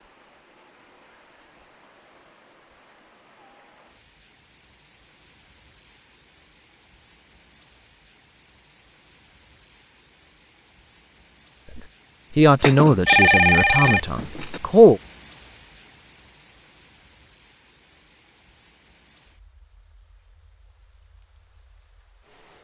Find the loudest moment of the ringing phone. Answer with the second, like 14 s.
13 s.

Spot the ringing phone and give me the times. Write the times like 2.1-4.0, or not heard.
12.6-14.6.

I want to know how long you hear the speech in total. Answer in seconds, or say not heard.
3 s.